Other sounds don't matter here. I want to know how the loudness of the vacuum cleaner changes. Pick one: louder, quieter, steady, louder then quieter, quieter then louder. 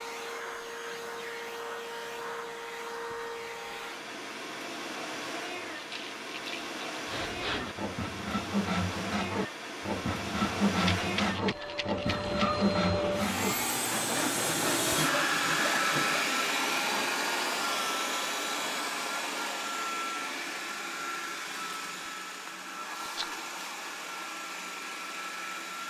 louder then quieter.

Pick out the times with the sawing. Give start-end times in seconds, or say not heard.
7.0-16.3.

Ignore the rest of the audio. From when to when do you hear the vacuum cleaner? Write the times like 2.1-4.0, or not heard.
0.0-25.8.